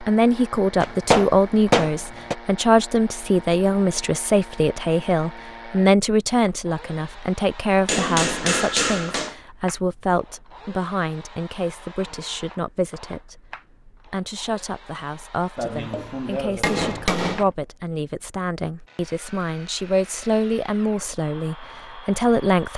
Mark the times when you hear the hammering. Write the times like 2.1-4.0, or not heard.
0.8-2.4, 7.8-9.3, 15.6-17.4.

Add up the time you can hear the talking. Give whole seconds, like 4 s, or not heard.
23 s.